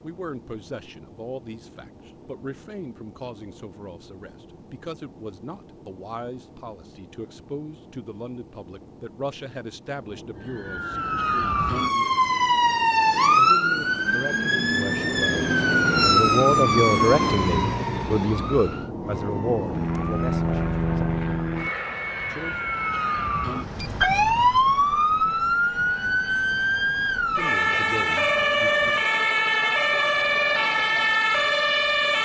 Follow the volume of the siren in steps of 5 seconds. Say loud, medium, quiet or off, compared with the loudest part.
off, off, loud, loud, loud, loud, loud.